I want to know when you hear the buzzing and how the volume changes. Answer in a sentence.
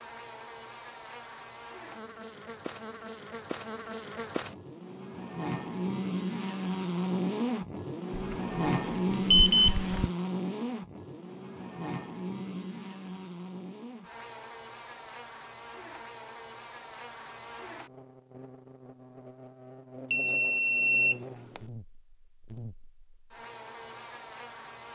The buzzing can be heard from 0.0 to 24.9 s, getting louder then quieter.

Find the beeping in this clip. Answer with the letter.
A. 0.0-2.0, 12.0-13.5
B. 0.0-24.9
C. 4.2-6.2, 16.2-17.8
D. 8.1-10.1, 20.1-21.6
D.